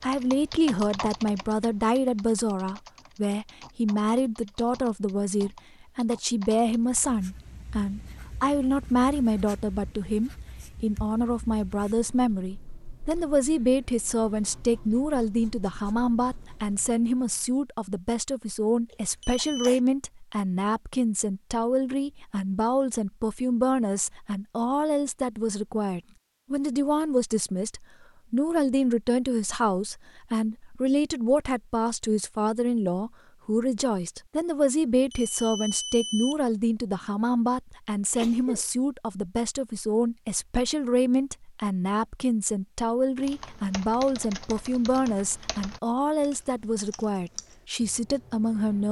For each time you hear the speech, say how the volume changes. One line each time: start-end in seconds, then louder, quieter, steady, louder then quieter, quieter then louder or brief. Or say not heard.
0.0-48.8 steady.